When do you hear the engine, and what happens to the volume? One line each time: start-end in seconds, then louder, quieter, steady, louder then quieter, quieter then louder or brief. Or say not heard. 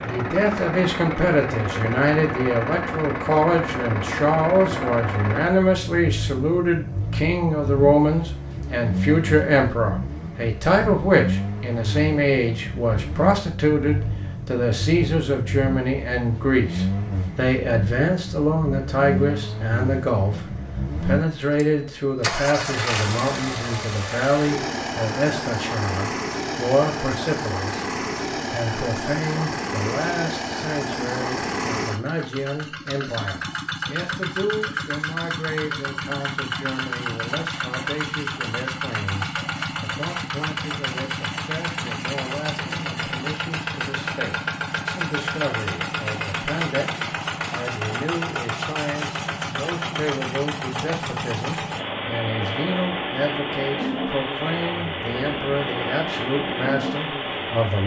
0.0-57.8 steady.